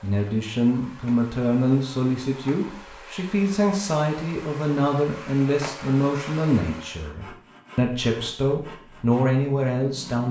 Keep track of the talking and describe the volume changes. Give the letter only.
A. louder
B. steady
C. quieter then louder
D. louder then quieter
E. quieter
B.